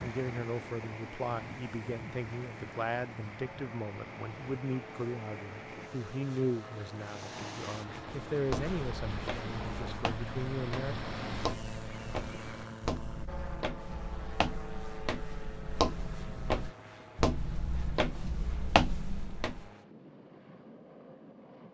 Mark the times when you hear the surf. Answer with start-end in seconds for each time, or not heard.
0.0-12.7.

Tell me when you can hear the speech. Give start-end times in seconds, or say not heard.
0.0-10.9.